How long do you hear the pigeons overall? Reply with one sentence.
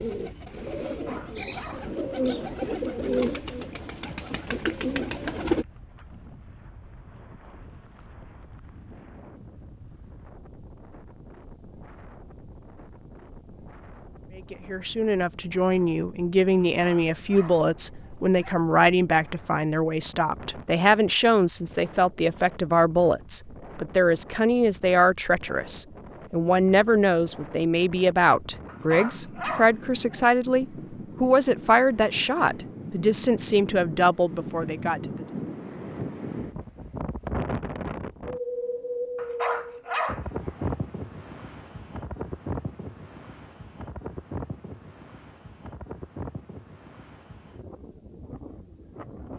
You can hear the pigeons for 6 seconds altogether.